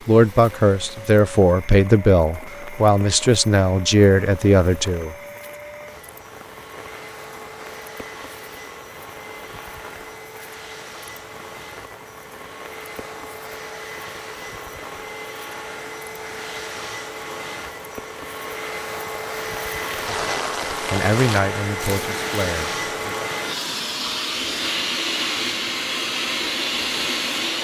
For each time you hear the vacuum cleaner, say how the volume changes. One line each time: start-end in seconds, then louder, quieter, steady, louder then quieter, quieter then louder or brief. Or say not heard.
0.0-27.5 louder.